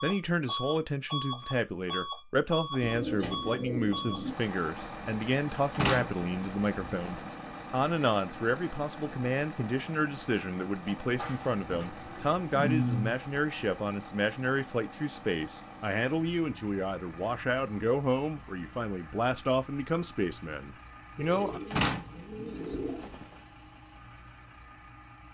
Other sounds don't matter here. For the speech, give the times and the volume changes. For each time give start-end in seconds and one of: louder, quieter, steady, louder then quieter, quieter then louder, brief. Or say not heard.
0.0-21.6 steady.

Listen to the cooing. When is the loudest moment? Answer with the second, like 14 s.
13 s.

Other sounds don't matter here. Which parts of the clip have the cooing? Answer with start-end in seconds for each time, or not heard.
2.8-4.3, 11.2-13.2, 21.1-23.1.